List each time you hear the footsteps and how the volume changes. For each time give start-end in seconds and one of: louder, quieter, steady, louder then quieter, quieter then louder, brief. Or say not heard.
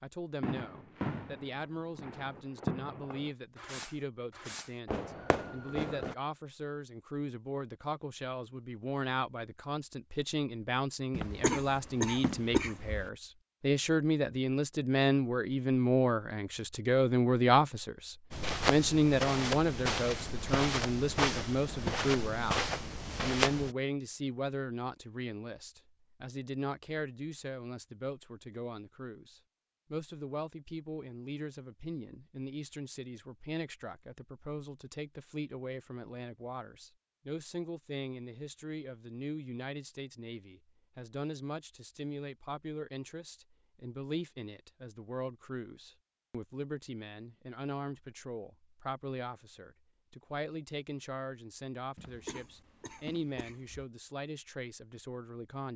18.3-23.8 steady.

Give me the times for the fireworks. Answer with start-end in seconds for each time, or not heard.
0.4-6.2.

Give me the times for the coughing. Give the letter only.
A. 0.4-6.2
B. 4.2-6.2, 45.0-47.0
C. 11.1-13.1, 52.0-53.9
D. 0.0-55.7
C.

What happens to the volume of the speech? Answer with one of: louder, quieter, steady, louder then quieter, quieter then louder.
louder then quieter.